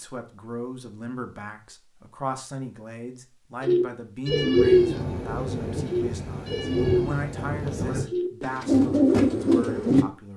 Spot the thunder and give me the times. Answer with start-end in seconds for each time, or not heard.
4.2-8.1.